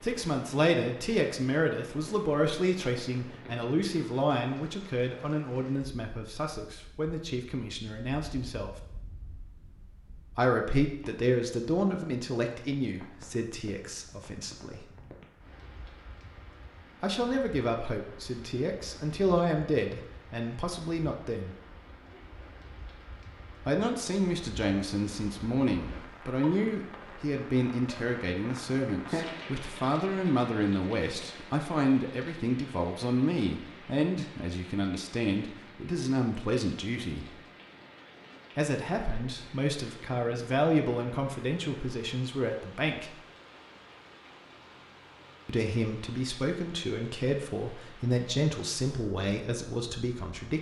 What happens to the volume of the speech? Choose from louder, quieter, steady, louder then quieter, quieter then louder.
steady.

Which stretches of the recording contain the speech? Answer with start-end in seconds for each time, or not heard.
0.0-8.7, 10.3-14.8, 17.0-21.6, 23.6-37.3, 38.5-43.1, 45.5-50.5.